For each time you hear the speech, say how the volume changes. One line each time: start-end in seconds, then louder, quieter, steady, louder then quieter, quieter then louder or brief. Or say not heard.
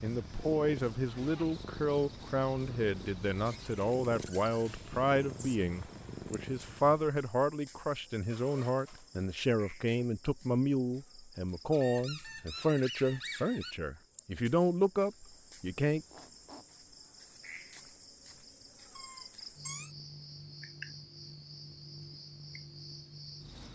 0.0-16.1 steady.